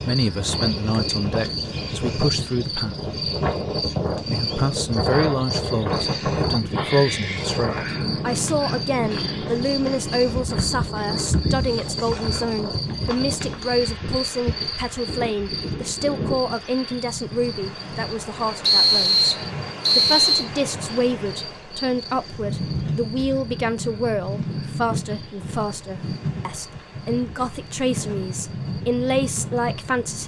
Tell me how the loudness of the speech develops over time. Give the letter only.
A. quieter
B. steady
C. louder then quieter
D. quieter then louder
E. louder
B.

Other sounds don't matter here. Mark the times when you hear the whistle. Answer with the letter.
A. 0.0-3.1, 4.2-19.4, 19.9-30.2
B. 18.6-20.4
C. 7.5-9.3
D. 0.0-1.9
B.